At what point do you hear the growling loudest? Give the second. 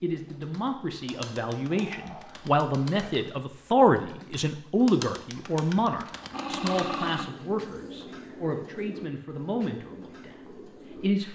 7 s.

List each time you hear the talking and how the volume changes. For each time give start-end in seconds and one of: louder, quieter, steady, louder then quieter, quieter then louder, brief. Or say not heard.
0.0-11.3 louder then quieter.